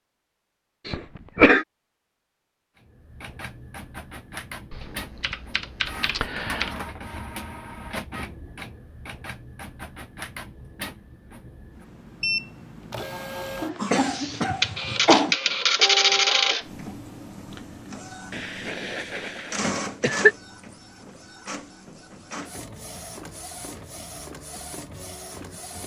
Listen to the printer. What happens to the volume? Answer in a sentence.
The loudness of the printer goes up, then down.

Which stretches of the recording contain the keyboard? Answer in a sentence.
You can hear the keyboard from 4.7 to 6.8 s.